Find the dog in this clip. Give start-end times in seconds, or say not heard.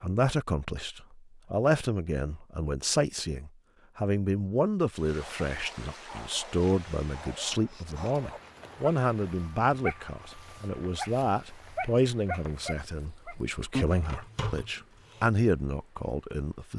5.2-15.2.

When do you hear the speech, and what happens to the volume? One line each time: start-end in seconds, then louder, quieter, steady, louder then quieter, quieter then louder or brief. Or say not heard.
0.0-16.7 steady.